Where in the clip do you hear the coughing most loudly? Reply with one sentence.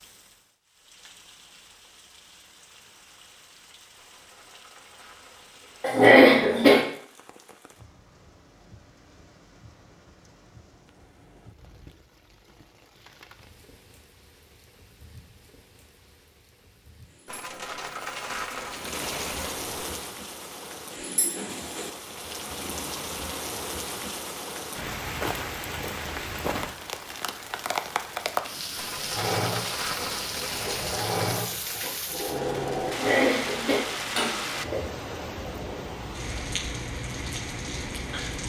The volume of the coughing peaks at 6 seconds.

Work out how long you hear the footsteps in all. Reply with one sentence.
You can't hear the footsteps here.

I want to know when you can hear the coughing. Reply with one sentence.
The coughing can be heard from 5.8 to 6.8 s and from 32.9 to 34.9 s.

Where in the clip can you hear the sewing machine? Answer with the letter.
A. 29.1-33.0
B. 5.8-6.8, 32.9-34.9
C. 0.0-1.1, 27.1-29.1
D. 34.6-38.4
A.